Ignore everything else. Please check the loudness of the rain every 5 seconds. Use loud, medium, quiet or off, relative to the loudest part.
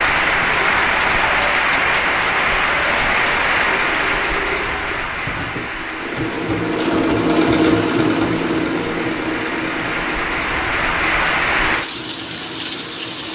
loud, medium, loud.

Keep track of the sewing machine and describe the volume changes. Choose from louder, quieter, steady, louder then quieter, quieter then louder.
louder then quieter.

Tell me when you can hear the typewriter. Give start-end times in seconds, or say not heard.
not heard.